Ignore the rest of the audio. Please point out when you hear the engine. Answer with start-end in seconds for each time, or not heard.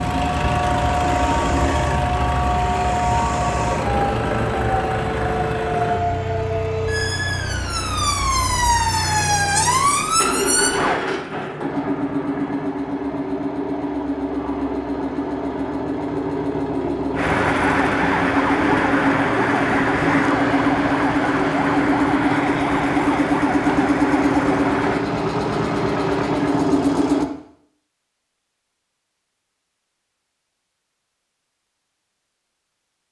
0.0-27.2.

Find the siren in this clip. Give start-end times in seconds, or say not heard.
0.0-11.0, 17.1-25.1.